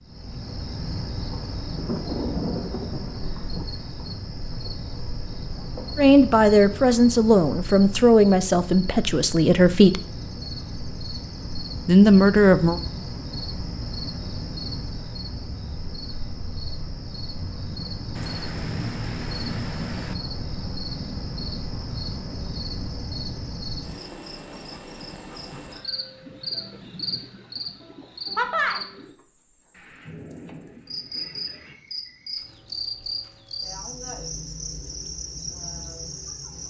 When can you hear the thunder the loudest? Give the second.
2 s.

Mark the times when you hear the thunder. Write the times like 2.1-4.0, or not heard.
1.8-3.6, 18.1-20.1, 29.7-31.8.